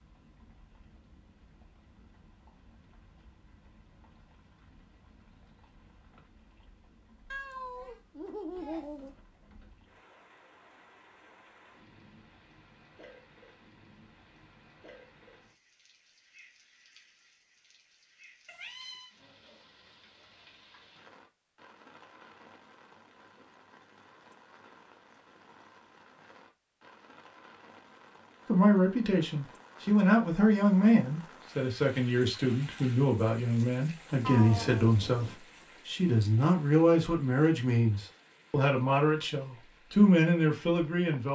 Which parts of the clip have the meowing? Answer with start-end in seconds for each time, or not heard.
7.3-9.2, 18.4-19.1, 34.2-35.4.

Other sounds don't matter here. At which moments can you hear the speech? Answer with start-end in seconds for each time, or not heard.
28.4-41.3.